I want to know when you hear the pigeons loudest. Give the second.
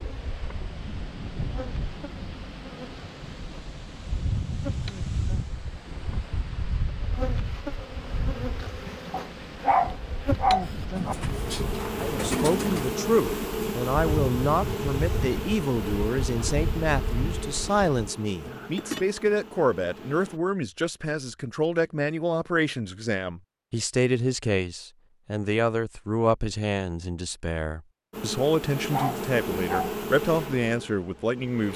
12 s.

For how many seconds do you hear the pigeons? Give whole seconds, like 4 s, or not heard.
2 s.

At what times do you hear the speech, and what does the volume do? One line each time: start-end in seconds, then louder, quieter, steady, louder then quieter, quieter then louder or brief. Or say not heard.
11.9-31.7 steady.